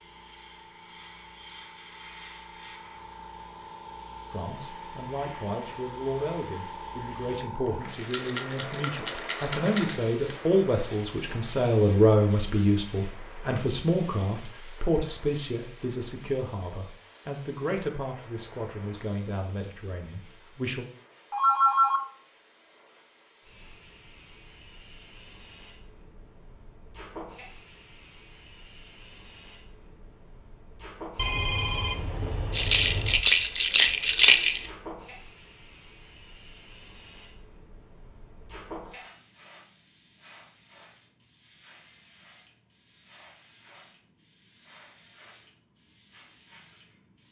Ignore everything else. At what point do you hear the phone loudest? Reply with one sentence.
The volume of the phone peaks at 22 seconds.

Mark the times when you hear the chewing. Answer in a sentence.
The chewing can't be heard in this clip.